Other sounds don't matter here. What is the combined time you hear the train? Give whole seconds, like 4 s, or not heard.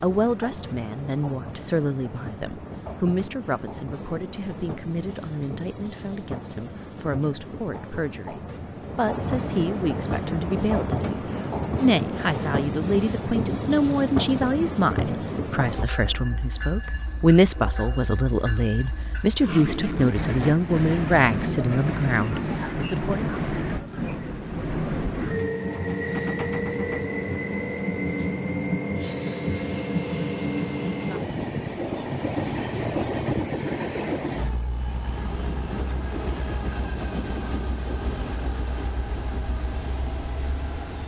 41 s.